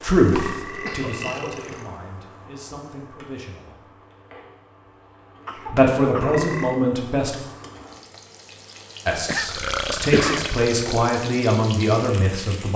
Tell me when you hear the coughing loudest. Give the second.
10 s.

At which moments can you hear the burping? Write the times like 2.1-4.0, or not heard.
0.2-1.9, 6.2-6.8, 9.4-11.1.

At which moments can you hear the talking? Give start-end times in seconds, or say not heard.
0.0-4.0, 5.7-7.3, 9.1-12.7.